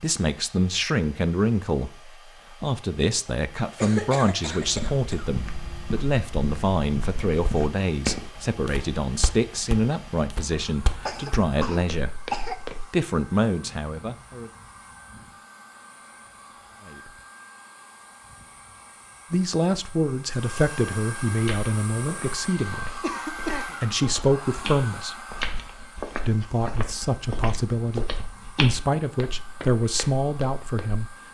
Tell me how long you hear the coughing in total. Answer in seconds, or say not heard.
4 s.